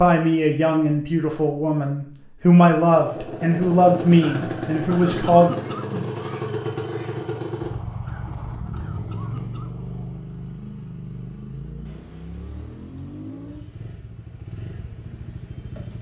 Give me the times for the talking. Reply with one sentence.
You can hear the talking from 0.0 to 5.5 s.